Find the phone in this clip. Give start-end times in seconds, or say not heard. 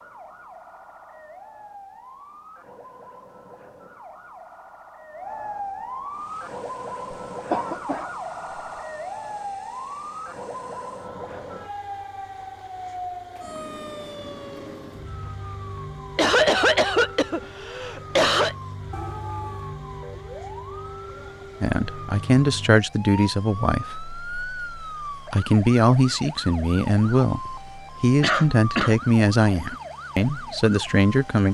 18.9-19.8.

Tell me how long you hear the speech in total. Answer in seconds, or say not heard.
10 s.